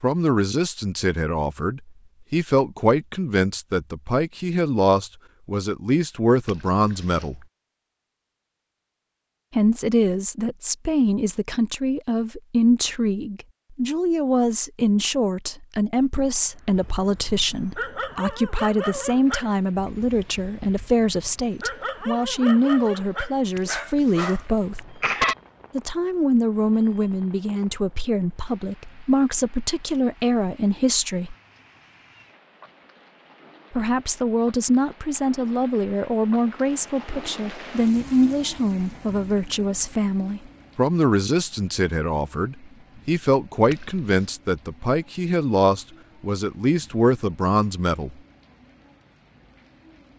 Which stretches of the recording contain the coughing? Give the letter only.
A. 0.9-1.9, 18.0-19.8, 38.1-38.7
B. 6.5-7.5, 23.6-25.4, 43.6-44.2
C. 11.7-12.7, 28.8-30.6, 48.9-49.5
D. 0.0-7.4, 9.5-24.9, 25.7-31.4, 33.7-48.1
B.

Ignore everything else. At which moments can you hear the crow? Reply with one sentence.
You can't hear the crow here.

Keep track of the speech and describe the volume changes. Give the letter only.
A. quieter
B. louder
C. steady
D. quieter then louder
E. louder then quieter
C.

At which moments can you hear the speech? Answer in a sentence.
You can hear the speech from 0.0 to 7.4 s, from 9.5 to 24.9 s, from 25.7 to 31.4 s and from 33.7 to 48.1 s.